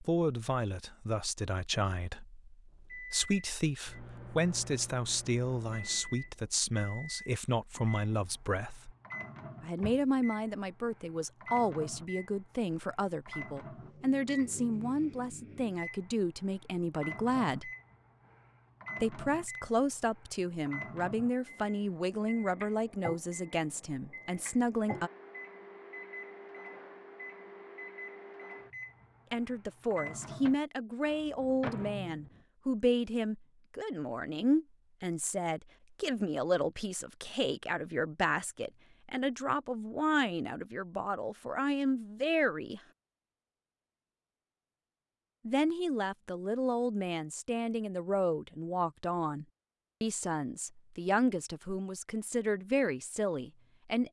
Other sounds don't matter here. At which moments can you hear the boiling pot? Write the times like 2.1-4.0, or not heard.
not heard.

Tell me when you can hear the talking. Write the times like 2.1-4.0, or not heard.
0.0-8.9, 9.6-17.7, 19.0-25.1, 29.3-42.8, 45.5-54.0.